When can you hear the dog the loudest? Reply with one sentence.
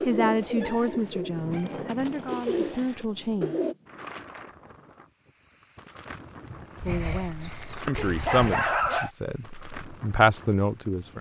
The loudest moment of the dog is at 9 seconds.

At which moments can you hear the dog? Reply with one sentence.
You can hear the dog from 0.5 to 1.9 s and from 6.8 to 9.1 s.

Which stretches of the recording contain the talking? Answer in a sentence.
The talking can be heard from 0.1 to 3.5 s and from 6.6 to 11.1 s.